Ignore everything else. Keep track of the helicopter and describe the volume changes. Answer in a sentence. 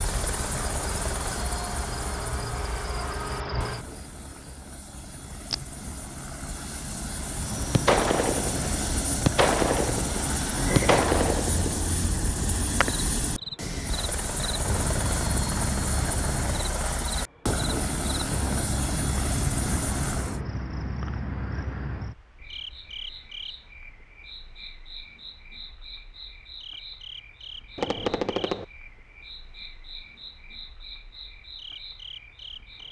The volume of the helicopter goes up.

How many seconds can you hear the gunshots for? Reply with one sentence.
The gunshots can be heard for 5 seconds in total.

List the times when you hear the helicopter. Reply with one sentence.
The helicopter can be heard from 0.0 to 20.4 s.